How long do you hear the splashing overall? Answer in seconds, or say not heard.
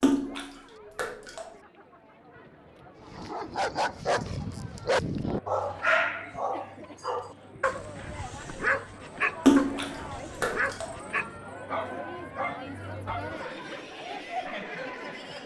3 s.